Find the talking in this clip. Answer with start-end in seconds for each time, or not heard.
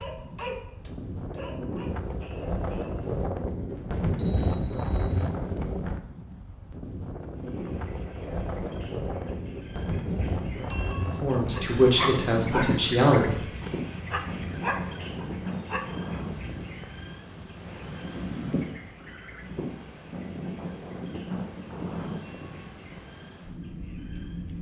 11.2-13.4.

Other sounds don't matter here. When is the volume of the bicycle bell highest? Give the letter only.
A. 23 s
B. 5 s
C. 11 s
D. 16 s
C.